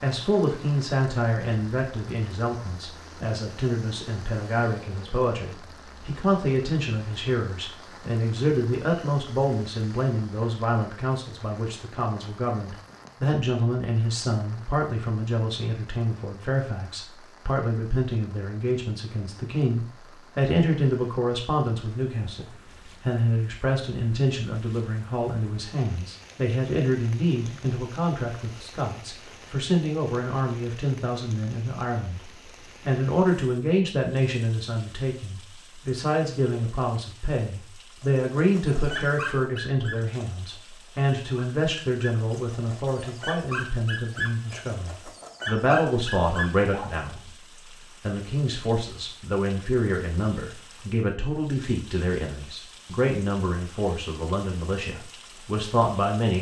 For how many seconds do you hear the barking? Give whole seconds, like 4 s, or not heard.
9 s.